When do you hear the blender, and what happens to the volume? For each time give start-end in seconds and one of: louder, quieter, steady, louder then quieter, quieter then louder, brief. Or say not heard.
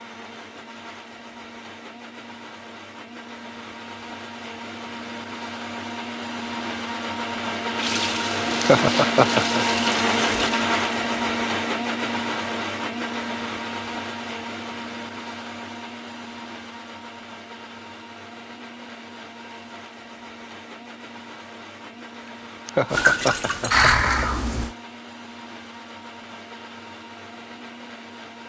0.0-28.4 louder then quieter.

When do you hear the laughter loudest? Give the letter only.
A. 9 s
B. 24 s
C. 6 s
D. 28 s
A.